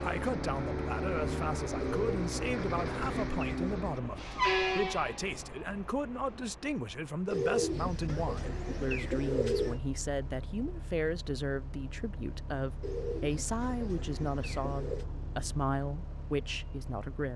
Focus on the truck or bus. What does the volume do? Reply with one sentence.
The loudness of the truck or bus goes down.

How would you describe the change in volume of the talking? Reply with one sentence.
The volume of the talking stays about the same.